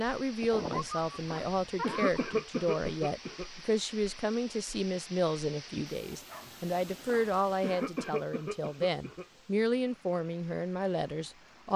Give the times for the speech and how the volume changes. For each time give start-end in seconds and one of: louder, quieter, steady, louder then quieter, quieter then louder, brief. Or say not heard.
0.0-11.7 steady.